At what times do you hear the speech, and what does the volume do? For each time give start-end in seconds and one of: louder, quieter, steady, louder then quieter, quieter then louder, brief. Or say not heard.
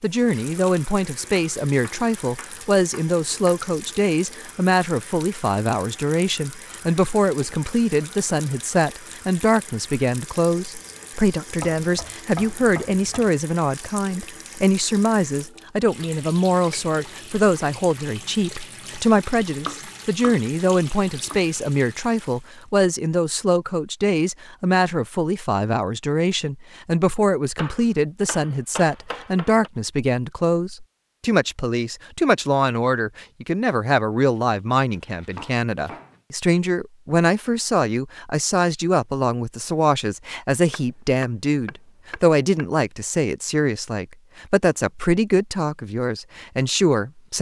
0.0-47.3 steady.